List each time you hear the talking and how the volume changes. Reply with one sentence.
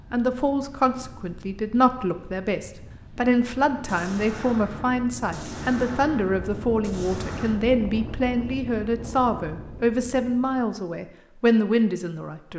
You can hear the talking from 0.1 to 12.5 s, at a steady volume.